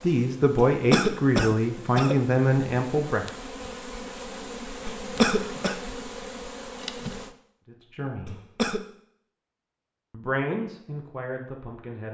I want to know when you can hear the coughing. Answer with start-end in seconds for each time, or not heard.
0.6-2.2, 4.8-5.8, 8.2-8.8.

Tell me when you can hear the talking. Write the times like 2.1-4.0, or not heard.
0.0-3.2, 7.7-8.4, 10.1-12.1.